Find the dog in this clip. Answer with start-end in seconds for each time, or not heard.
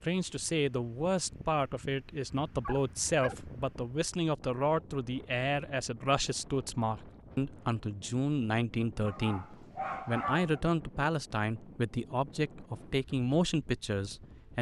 2.3-3.5, 9.1-10.6.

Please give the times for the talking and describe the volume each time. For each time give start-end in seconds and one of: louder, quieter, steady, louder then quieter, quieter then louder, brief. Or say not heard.
0.0-14.5 steady.